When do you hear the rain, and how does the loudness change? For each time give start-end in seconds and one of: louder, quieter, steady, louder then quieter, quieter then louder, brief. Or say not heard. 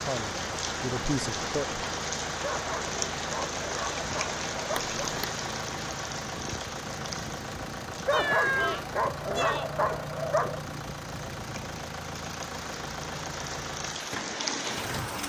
0.0-15.2 quieter then louder.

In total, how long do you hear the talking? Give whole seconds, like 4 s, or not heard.
2 s.